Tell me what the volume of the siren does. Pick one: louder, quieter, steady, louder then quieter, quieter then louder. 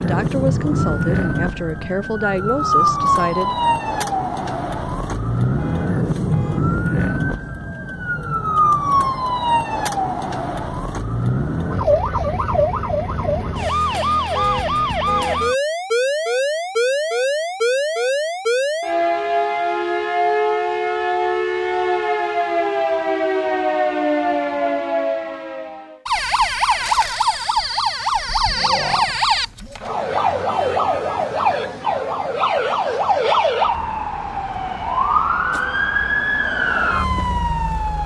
steady.